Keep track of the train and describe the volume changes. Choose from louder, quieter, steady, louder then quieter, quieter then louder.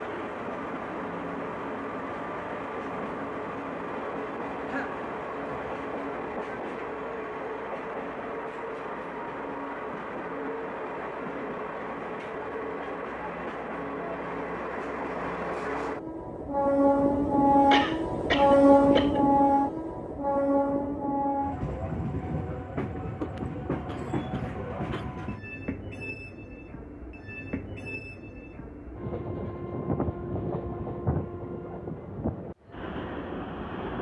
louder then quieter.